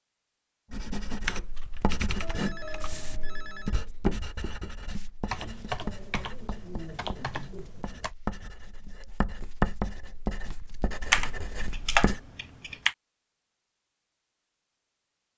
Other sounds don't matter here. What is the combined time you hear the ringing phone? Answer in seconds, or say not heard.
2 s.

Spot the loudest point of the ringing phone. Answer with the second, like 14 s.
3 s.